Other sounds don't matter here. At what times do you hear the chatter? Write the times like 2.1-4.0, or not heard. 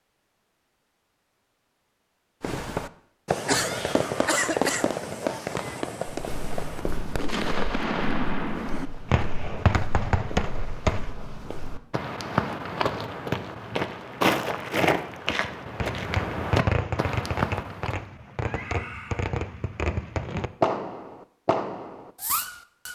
not heard.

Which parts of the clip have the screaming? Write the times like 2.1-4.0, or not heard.
3.5-4.5, 18.4-19.2.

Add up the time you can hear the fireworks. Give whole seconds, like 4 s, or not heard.
16 s.